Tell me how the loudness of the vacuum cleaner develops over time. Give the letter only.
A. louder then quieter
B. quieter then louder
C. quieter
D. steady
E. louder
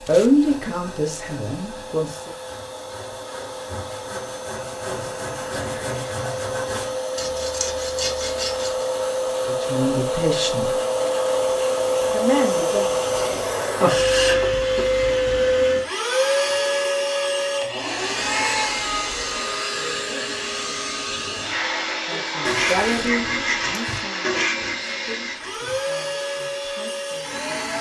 A.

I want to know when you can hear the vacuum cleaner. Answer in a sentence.
You can hear the vacuum cleaner from 0.0 to 27.7 s.